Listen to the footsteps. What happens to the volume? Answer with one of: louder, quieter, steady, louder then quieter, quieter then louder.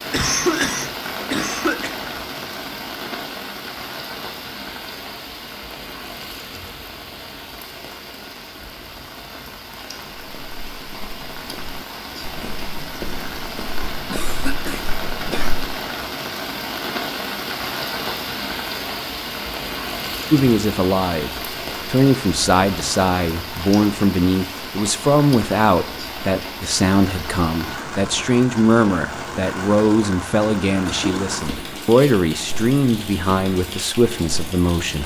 louder.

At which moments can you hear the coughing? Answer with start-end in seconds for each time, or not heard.
0.1-1.9, 14.1-15.6, 30.6-31.4.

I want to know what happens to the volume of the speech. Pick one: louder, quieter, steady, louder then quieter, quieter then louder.
steady.